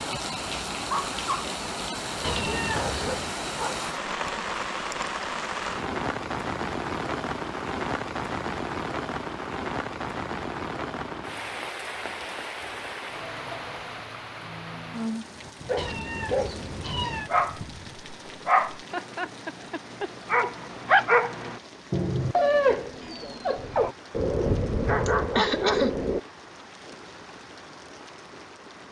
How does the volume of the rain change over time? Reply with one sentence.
The volume of the rain goes down.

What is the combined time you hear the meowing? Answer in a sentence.
The meowing can be heard for 3 seconds in total.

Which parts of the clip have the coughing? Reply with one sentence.
You can hear the coughing from 25.1 to 25.9 s.